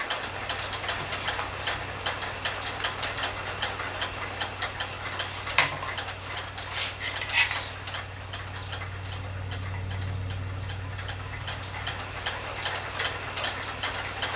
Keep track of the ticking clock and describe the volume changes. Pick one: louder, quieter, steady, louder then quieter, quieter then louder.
quieter then louder.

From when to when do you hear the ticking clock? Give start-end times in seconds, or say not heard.
0.0-14.3.